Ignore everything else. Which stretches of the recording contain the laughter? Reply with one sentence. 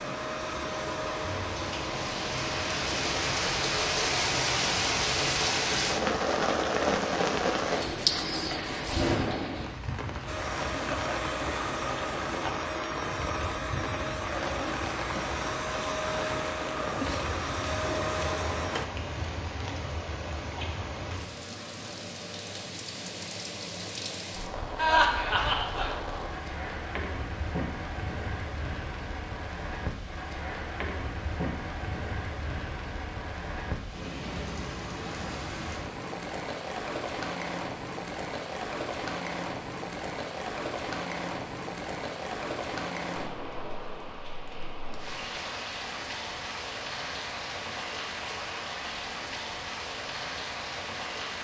The laughter can be heard from 24.8 to 25.9 s.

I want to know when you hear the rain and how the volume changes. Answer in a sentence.
You can hear the rain from 0.0 to 51.3 s, getting quieter.